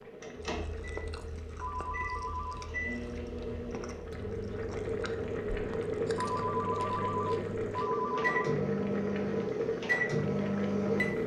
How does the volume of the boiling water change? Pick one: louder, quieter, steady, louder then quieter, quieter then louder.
louder.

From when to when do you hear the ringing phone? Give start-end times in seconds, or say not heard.
1.6-2.7, 6.2-8.4.